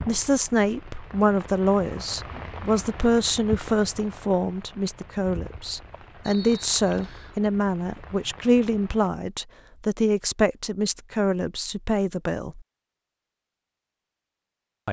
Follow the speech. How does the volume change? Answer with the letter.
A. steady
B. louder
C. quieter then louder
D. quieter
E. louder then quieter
A.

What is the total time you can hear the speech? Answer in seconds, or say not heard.
13 s.